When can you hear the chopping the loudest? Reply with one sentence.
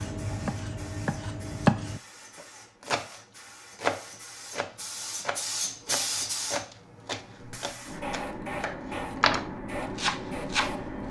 The loudest moment of the chopping is at 2 seconds.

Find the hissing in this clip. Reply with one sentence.
The hissing can be heard from 0.0 to 11.0 s.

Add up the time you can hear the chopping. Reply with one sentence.
The chopping can be heard for 11 seconds in total.